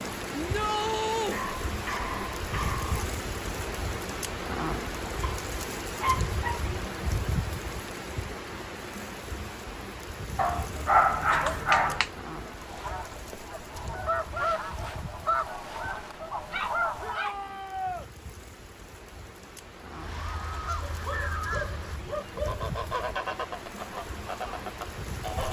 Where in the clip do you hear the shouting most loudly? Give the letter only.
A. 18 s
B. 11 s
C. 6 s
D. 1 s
D.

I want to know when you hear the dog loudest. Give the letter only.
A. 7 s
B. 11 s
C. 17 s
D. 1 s
B.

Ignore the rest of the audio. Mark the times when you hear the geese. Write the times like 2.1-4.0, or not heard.
12.4-17.2, 19.9-25.4.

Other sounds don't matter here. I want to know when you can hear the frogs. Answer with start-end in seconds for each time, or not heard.
not heard.